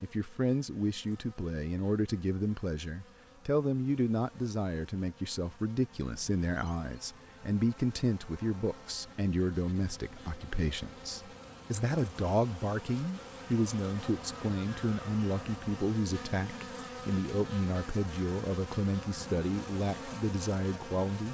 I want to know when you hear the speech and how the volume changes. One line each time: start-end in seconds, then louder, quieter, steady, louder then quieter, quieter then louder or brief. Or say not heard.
0.0-21.2 steady.